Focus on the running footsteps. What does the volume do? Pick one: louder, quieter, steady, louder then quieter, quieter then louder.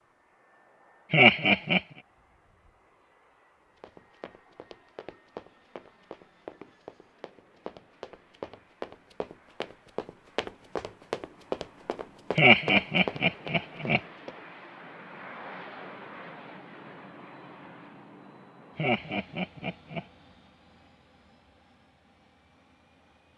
louder.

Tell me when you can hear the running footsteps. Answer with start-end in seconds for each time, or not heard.
3.8-14.4.